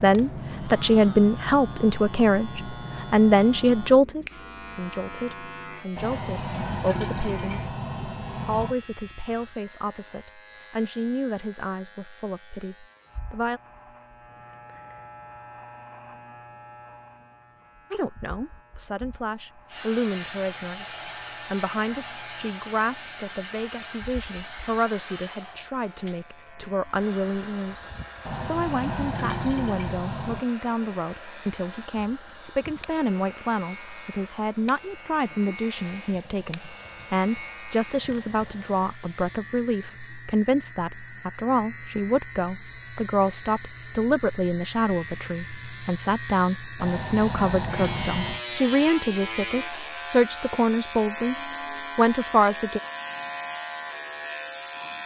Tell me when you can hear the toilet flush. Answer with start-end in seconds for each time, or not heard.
6.0-8.8, 28.2-30.4, 46.8-48.5.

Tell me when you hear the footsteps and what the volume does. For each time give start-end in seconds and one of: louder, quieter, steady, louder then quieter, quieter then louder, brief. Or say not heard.
not heard.